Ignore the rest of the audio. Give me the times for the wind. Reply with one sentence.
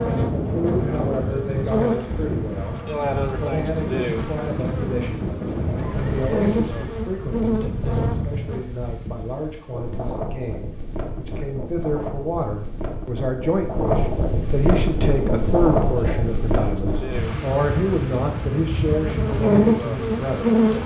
You can hear the wind from 0.0 to 20.8 s.